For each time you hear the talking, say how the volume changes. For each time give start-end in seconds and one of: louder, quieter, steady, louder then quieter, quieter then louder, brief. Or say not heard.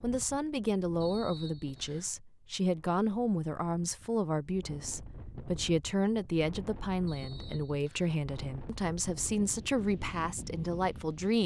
0.0-11.4 steady.